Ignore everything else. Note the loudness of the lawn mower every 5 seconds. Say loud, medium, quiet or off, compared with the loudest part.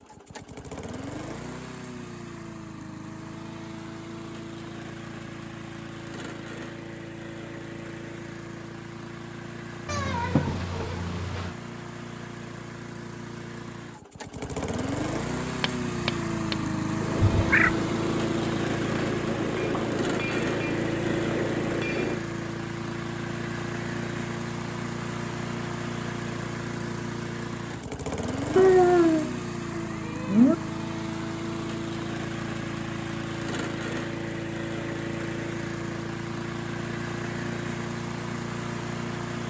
medium, medium, medium, loud, loud, loud, loud, loud.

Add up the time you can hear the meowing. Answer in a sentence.
The meowing can be heard for 4 seconds in total.